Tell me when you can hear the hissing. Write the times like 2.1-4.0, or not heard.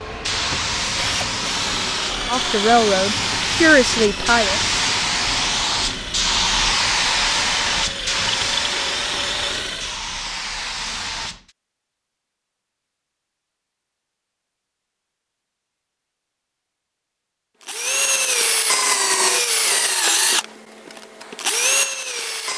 0.1-11.5.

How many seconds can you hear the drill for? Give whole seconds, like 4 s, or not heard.
15 s.